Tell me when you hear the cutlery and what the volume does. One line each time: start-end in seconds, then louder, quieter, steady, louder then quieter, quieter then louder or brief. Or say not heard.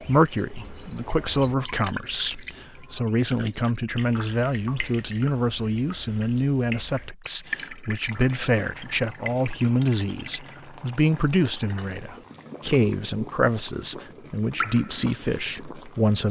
not heard.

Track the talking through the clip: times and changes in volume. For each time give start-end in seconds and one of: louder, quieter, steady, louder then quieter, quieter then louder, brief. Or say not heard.
0.0-16.2 steady.